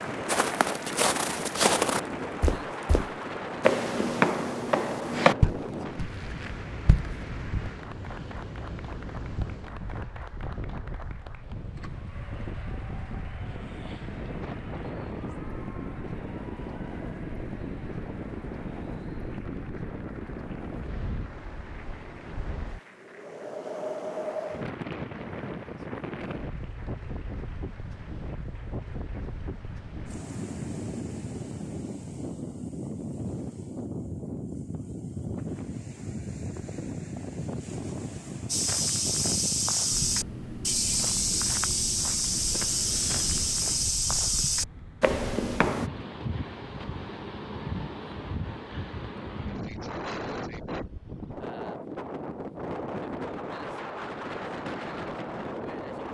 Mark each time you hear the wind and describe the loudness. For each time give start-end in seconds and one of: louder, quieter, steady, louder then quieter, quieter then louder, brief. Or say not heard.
0.0-56.0 steady.